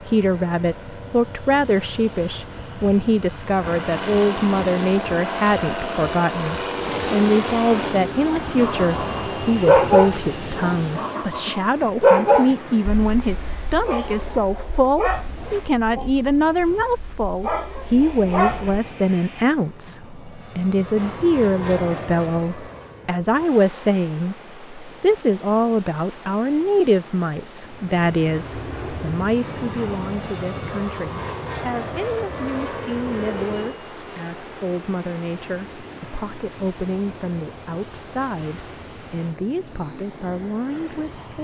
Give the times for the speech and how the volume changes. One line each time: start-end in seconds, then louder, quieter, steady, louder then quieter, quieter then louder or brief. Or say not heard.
0.0-41.3 quieter.